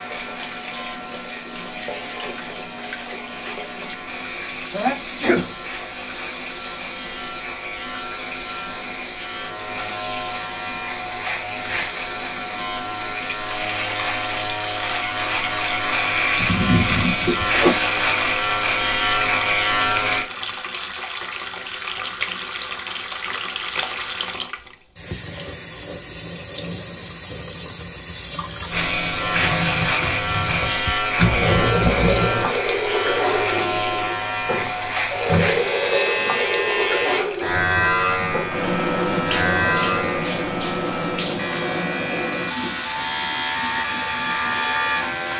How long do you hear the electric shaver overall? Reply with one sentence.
The electric shaver can be heard for 37 seconds in total.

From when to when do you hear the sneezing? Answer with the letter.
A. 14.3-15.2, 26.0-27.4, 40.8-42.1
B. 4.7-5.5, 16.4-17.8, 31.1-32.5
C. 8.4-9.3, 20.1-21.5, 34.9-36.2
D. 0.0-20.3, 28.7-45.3
B.